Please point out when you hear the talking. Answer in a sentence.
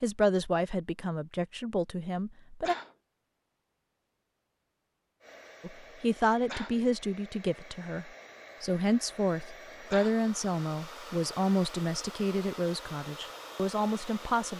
You can hear the talking from 0.0 to 2.8 s and from 5.6 to 14.5 s.